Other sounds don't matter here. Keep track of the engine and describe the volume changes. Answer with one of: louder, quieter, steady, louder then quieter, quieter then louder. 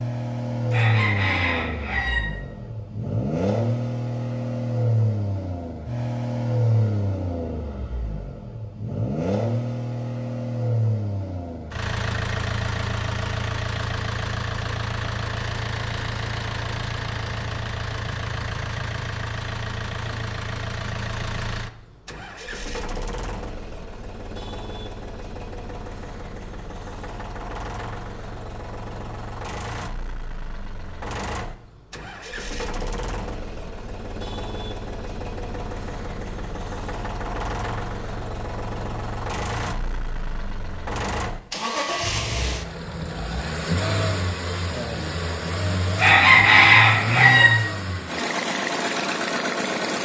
quieter then louder.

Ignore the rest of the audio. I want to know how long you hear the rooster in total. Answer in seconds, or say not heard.
3 s.